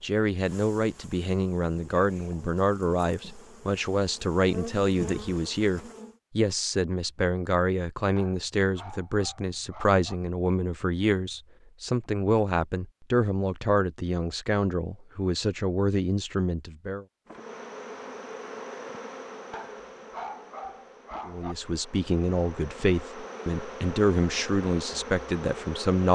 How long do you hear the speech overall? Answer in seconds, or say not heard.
22 s.